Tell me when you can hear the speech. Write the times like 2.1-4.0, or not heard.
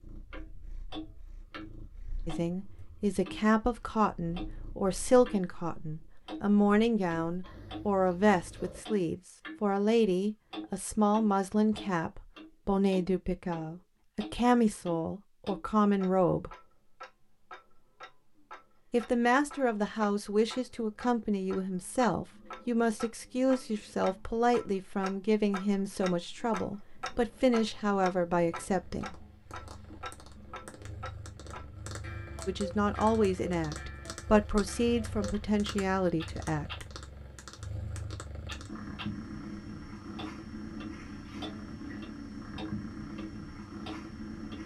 2.2-16.5, 18.9-29.1, 32.5-36.9.